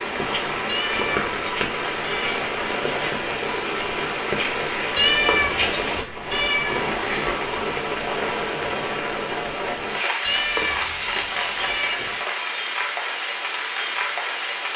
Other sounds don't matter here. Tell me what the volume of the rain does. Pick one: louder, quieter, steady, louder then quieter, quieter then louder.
steady.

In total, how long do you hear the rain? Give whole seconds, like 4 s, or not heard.
15 s.